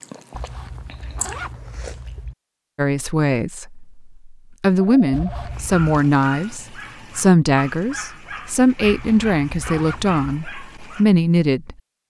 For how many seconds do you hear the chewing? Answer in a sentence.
The chewing can be heard for 2 seconds in total.